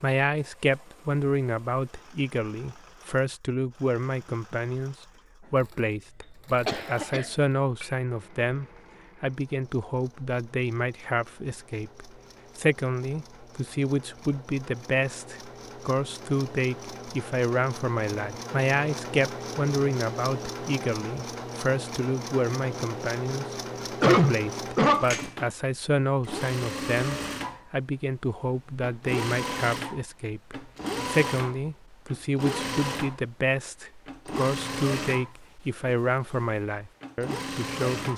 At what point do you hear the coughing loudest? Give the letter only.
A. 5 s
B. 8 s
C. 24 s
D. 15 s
C.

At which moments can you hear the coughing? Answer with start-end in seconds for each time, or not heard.
6.7-7.9, 24.0-25.1.